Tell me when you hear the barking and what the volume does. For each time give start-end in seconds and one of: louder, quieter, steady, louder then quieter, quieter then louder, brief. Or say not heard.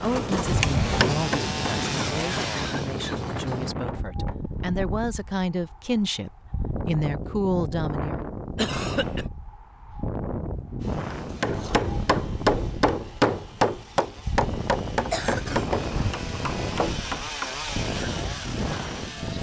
not heard.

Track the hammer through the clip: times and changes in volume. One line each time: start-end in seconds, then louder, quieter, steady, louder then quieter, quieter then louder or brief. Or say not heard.
0.0-4.4 quieter then louder
11.2-17.8 quieter.